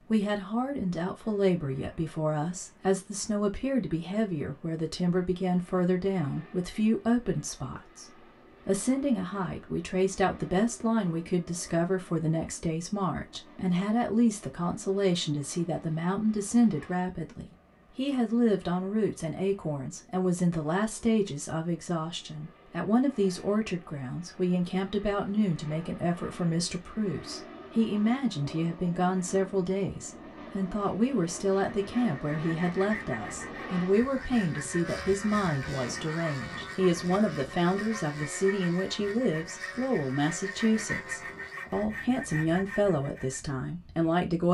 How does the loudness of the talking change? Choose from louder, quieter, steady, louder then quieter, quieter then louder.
steady.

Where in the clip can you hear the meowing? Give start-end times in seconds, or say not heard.
not heard.